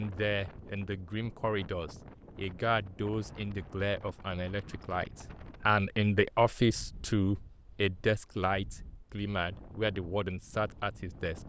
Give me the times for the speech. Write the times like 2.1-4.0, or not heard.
0.0-11.4.